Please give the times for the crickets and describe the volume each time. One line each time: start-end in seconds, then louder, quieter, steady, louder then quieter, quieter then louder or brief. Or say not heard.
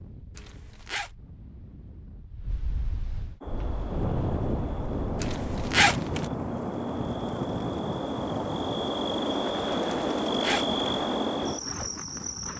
3.4-12.5 louder.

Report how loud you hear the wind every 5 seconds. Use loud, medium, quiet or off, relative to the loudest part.
loud, loud, medium.